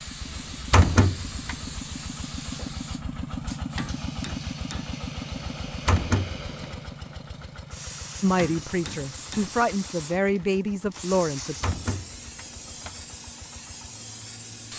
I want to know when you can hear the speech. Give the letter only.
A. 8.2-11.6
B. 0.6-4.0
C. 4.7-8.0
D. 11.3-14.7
A.